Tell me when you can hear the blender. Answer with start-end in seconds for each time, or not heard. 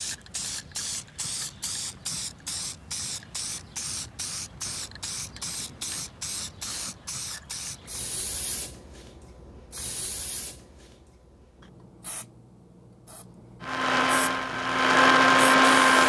13.6-16.0.